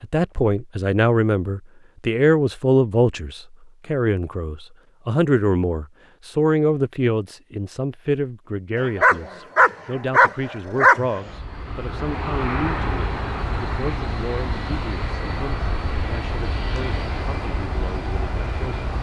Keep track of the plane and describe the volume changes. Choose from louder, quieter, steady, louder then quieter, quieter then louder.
steady.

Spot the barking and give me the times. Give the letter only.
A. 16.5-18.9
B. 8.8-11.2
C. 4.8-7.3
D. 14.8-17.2
B.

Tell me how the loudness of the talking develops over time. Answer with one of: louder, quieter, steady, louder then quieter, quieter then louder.
quieter.